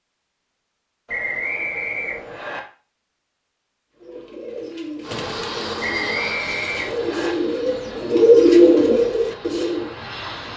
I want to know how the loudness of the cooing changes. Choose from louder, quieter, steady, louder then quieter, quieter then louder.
louder.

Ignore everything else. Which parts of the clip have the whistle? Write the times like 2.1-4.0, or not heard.
1.1-2.6, 5.8-7.3.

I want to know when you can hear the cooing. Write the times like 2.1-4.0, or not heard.
4.0-9.9.